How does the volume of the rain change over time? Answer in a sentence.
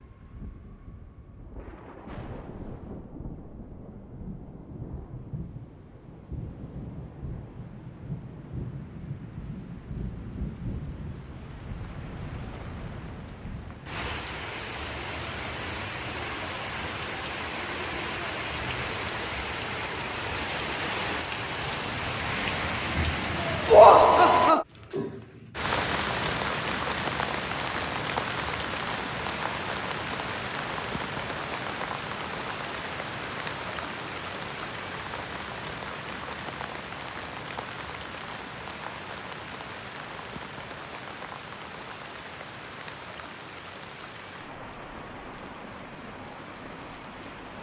The volume of the rain goes up, then down.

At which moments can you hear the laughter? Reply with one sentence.
You can hear the laughter from 23.6 to 24.6 s.